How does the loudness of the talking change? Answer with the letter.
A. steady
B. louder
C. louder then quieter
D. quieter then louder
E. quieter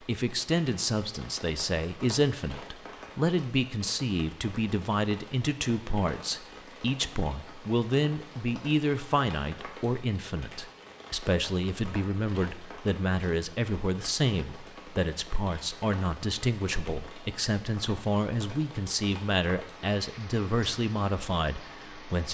A.